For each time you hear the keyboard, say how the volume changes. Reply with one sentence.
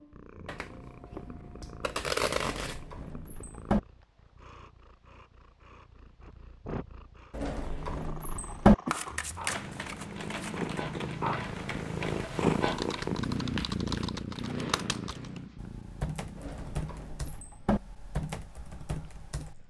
The keyboard can be heard from 9.4 to 19.6 s, at a steady volume.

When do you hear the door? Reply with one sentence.
The door can be heard from 2.4 to 3.8 s, from 7.3 to 8.8 s and from 16.4 to 17.8 s.